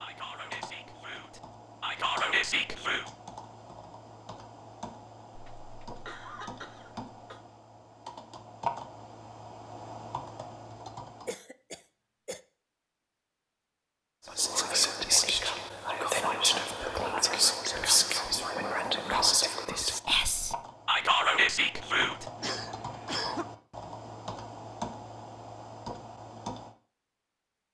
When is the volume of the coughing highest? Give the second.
23 s.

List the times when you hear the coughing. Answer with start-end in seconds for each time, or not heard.
5.3-7.4, 11.2-12.4, 22.4-23.4.